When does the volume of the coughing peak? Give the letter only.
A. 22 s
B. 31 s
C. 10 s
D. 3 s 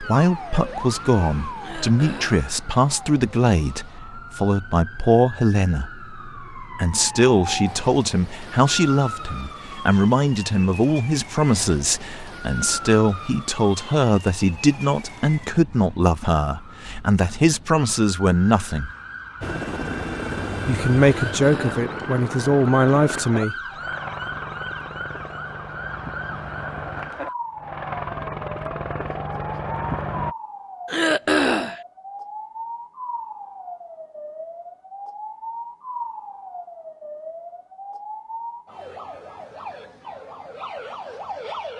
B.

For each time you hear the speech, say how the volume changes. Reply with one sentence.
The speech can be heard from 0.0 to 18.9 s, at a steady volume; and briefly from 20.6 to 23.6 s.